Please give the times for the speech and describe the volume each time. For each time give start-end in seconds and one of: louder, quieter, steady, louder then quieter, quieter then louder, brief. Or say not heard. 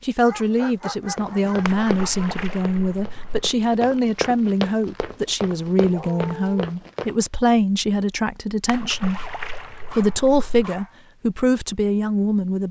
0.0-12.6 steady.